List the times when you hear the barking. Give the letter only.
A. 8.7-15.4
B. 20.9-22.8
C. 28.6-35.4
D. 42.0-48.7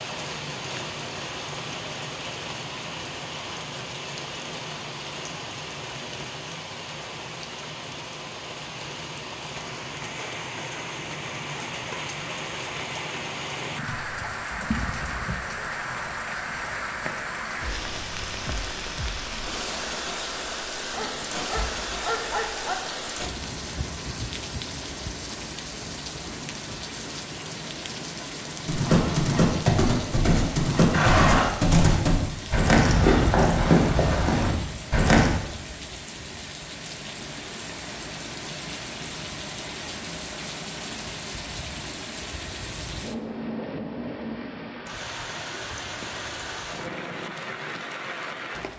B.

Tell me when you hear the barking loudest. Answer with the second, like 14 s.
22 s.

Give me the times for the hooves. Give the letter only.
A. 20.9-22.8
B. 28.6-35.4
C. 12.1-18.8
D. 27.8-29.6
B.